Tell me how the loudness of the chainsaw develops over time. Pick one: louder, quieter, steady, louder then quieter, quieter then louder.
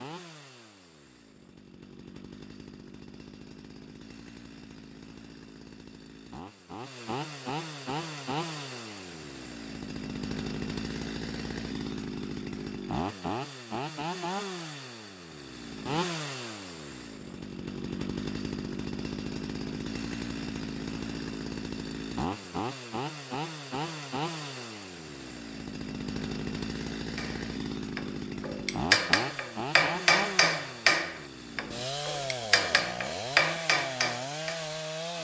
louder.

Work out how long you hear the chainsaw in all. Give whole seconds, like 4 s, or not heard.
35 s.